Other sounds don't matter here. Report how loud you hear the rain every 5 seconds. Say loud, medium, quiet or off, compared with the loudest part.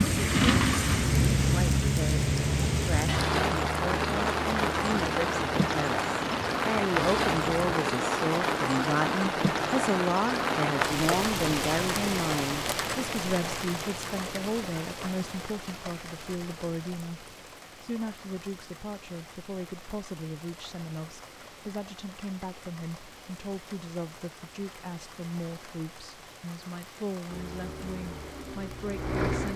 loud, loud, loud, quiet, quiet, quiet.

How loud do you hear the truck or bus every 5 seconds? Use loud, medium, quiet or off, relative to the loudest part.
loud, medium, off, off, off, medium.